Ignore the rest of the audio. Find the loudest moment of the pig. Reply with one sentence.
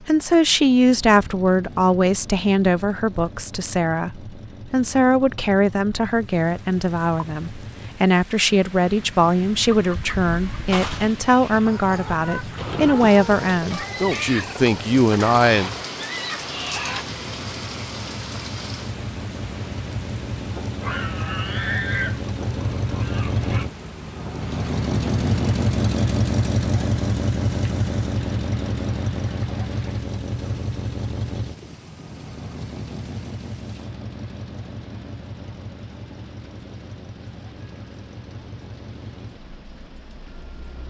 The volume of the pig peaks at 22 seconds.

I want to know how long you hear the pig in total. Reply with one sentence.
The pig can be heard for 3 seconds in total.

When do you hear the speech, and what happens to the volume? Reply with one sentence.
You can hear the speech from 0.1 to 15.7 s, at a steady volume.